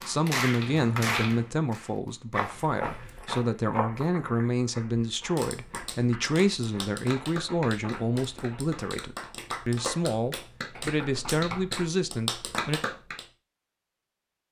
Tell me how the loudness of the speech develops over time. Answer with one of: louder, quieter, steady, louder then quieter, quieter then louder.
steady.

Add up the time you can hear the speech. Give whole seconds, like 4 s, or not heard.
13 s.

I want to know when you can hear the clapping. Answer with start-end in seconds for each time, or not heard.
0.0-2.4, 5.2-13.2.